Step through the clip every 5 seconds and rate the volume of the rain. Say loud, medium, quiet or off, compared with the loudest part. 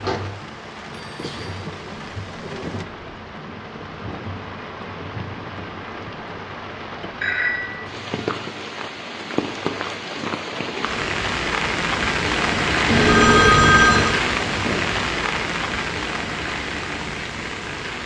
medium, medium, loud, medium.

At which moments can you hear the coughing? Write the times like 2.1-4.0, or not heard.
not heard.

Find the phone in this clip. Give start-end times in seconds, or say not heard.
0.9-1.6, 7.2-7.8, 12.8-14.2.